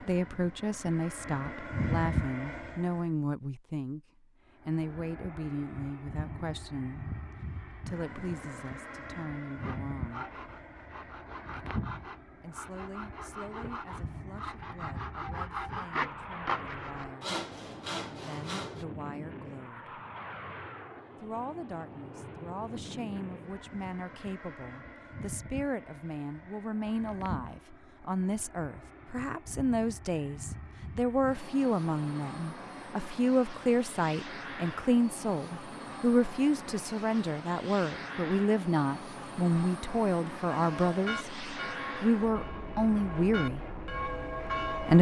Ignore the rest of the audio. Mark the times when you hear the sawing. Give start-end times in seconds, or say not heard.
9.6-18.9.